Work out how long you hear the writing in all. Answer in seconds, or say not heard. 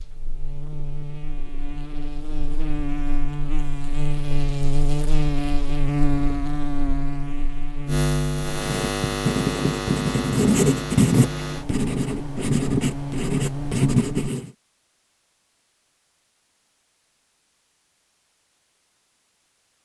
6 s.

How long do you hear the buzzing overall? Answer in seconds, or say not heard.
14 s.